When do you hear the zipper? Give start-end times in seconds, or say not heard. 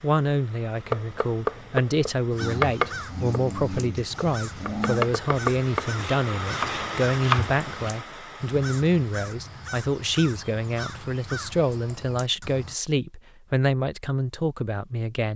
not heard.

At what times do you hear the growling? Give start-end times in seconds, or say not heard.
2.4-5.1.